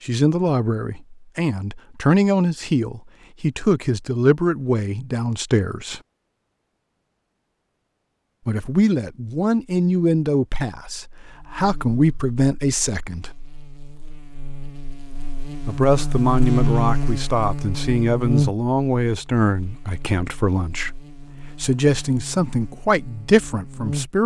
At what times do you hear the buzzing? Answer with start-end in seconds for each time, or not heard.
11.2-24.2.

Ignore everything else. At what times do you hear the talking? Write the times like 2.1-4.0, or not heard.
0.0-6.0, 8.4-13.3, 15.7-20.9, 21.6-24.2.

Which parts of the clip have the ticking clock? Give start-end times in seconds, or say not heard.
not heard.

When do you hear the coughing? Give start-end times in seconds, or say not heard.
not heard.